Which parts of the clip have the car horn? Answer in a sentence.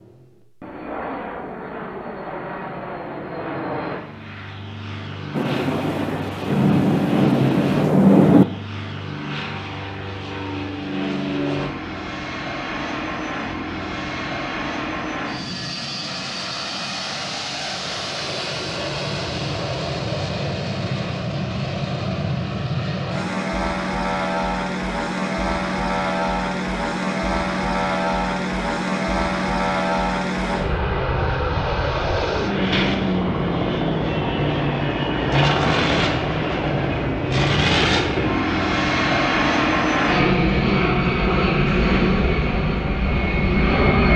You can't hear the car horn here.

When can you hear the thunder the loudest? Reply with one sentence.
The volume of the thunder peaks at 8 seconds.